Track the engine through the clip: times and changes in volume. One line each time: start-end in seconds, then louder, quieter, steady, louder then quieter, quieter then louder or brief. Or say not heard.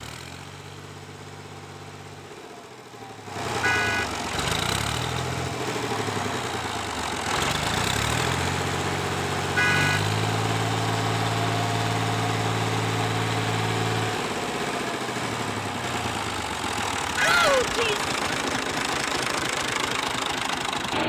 0.0-21.0 louder.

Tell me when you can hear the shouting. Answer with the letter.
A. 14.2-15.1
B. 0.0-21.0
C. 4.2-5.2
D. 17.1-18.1
D.